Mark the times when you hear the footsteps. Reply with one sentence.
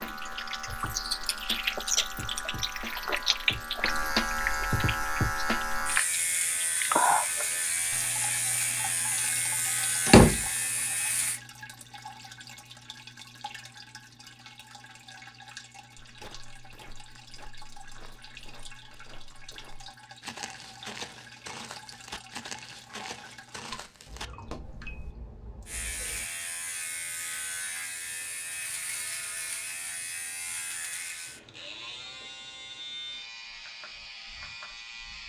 The footsteps can be heard from 15.9 to 25.1 s.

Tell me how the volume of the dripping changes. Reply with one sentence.
The loudness of the dripping goes down.